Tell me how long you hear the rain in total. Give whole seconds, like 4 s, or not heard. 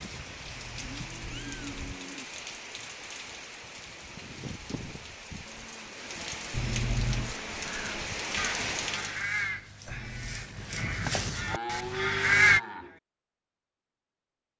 9 s.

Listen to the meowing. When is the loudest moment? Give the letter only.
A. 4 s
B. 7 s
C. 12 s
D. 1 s
B.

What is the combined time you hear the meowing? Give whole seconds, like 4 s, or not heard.
3 s.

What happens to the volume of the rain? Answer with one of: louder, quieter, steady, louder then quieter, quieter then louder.
louder.